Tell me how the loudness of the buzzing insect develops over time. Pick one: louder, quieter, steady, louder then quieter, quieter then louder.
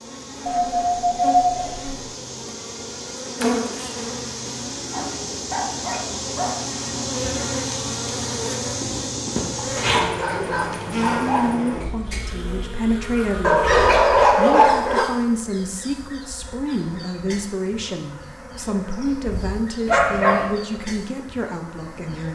quieter.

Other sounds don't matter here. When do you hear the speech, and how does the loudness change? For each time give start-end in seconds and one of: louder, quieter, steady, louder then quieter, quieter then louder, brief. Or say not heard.
11.2-22.3 steady.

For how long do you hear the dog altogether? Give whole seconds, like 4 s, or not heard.
7 s.